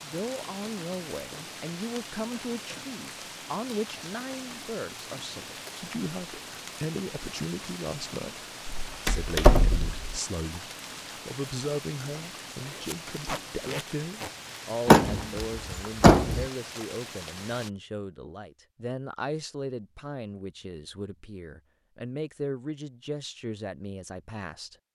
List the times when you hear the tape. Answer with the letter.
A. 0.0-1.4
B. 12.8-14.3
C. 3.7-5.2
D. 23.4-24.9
B.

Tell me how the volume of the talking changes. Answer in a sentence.
The loudness of the talking stays about the same.